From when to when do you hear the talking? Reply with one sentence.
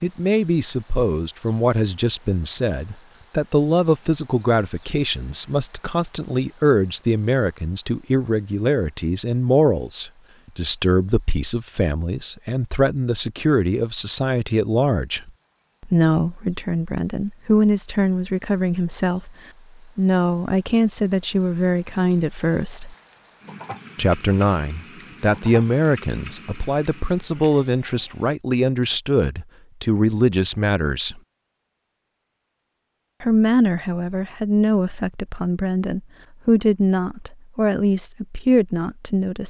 You can hear the talking from 0.0 to 19.3 s, from 19.9 to 22.9 s, from 23.9 to 31.2 s and from 33.2 to 39.4 s.